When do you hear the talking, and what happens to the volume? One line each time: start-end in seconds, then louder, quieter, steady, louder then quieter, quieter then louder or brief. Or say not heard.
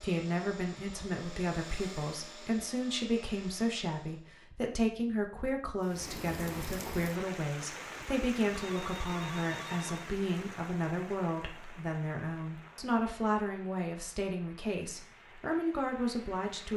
0.0-16.7 steady.